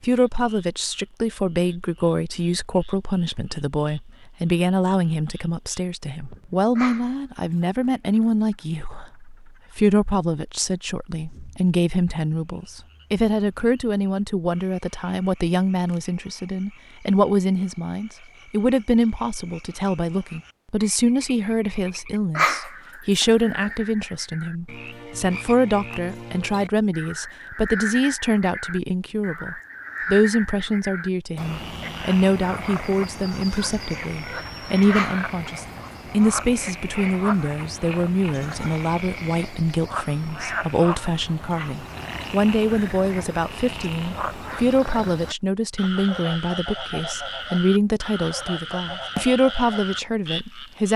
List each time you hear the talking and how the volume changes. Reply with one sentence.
You can hear the talking from 0.0 to 50.9 s, at a steady volume.